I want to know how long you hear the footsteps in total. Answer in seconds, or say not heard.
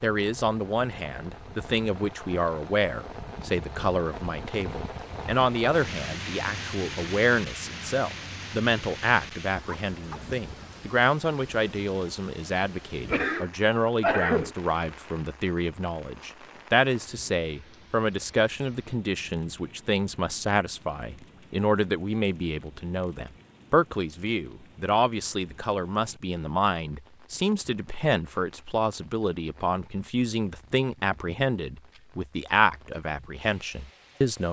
not heard.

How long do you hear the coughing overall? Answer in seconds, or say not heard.
2 s.